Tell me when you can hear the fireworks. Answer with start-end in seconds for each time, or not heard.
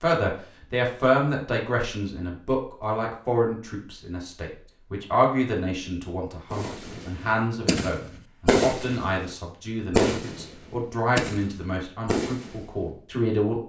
6.5-9.3, 9.9-12.7.